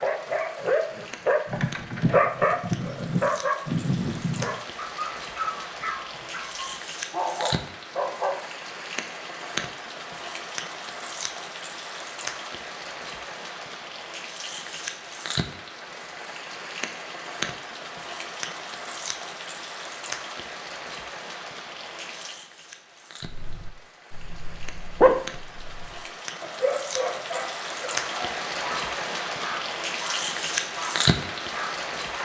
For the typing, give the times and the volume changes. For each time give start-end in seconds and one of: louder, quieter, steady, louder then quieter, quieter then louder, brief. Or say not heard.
not heard.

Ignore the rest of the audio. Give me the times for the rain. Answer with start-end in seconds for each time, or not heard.
0.0-32.2.